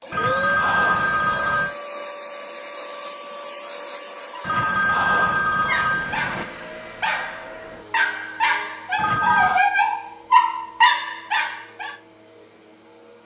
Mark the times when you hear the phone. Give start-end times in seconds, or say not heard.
0.1-1.8, 4.4-6.5, 8.9-9.6.